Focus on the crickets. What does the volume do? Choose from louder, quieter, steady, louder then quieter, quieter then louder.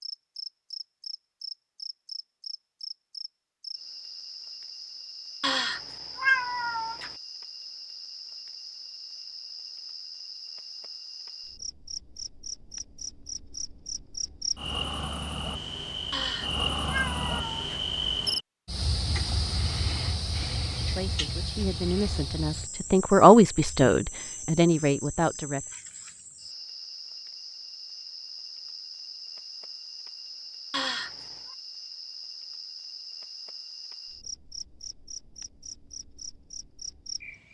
louder then quieter.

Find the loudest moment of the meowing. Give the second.
6 s.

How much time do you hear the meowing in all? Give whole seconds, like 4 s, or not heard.
4 s.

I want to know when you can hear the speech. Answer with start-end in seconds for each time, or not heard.
20.8-25.6.